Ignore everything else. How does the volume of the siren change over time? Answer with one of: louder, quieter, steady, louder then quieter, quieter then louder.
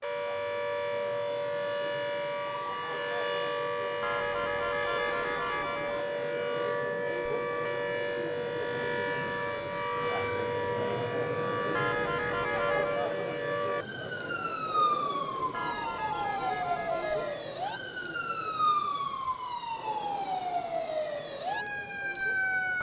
steady.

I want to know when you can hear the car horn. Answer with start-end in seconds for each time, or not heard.
4.0-6.0, 11.7-13.0, 15.5-17.4.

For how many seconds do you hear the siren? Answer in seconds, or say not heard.
23 s.